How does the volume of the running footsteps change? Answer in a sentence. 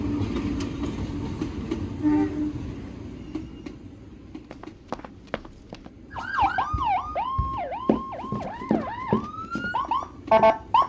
The volume of the running footsteps goes down, then up.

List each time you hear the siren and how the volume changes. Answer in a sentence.
You can hear the siren from 6.2 to 10.8 s, getting quieter then louder.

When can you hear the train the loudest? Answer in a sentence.
The loudest moment of the train is at 2 seconds.